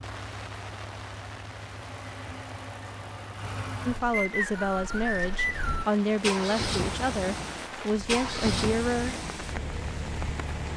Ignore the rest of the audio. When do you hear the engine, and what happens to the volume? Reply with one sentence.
You can hear the engine from 0.0 to 10.7 s, getting louder.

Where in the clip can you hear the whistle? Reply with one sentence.
The whistle can be heard from 4.1 to 6.0 s.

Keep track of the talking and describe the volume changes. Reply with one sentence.
The volume of the talking stays about the same.